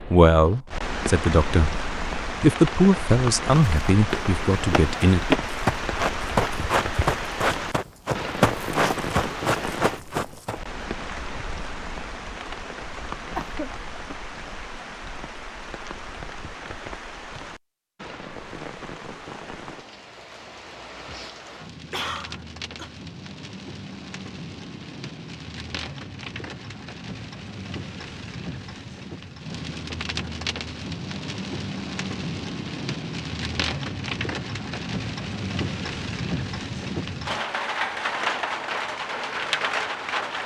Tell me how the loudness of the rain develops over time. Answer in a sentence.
The loudness of the rain goes down, then up.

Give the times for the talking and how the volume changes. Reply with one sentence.
The talking can be heard from 0.1 to 5.2 s, getting louder then quieter.